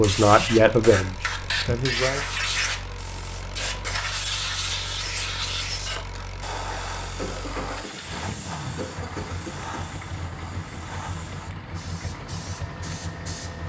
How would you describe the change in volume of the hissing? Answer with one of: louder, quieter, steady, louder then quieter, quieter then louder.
quieter.